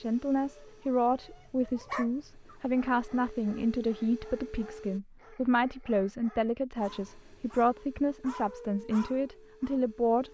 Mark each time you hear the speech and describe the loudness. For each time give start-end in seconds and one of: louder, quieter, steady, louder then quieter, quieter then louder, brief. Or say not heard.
0.0-10.3 steady.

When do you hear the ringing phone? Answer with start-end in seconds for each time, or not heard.
not heard.